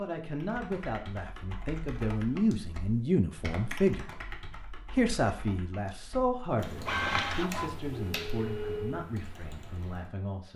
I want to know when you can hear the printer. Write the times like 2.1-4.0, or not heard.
6.5-9.1.